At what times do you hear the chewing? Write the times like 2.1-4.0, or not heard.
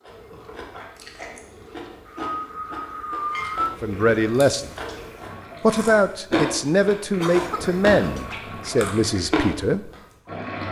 0.0-10.0.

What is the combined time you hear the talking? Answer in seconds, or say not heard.
5 s.